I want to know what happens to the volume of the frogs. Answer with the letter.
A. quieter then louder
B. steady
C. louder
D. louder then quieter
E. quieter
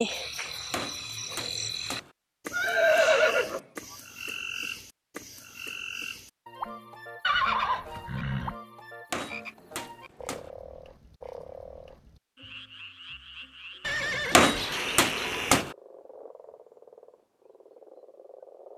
E.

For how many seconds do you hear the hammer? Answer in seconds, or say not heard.
4 s.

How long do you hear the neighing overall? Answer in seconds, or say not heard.
4 s.